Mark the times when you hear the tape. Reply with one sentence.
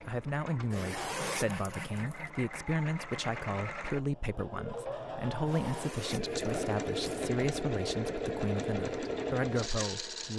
The tape can't be heard in this clip.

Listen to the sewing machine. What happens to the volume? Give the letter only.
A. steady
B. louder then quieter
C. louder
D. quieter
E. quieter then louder
C.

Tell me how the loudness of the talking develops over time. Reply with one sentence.
The volume of the talking stays about the same.